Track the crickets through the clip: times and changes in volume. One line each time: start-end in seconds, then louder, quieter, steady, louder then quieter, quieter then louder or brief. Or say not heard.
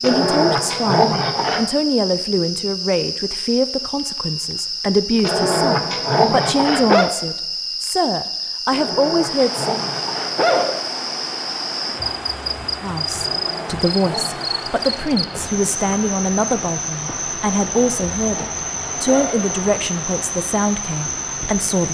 0.0-21.8 steady.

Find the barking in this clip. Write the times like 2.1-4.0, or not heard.
0.0-1.6, 5.2-7.1, 8.7-10.8, 13.2-14.8, 17.6-19.4.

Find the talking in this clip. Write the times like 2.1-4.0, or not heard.
0.0-9.8, 12.8-21.8.